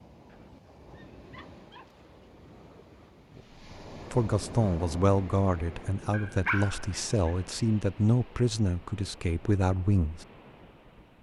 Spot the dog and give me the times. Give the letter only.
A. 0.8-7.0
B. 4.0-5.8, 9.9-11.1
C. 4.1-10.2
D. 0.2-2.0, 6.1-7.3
D.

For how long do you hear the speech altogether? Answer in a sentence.
The speech can be heard for 6 seconds in total.